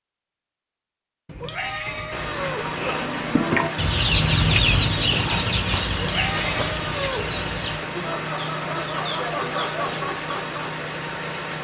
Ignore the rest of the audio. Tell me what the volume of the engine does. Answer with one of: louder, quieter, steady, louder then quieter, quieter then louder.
steady.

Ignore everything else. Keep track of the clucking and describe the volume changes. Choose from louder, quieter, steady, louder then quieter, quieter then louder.
quieter.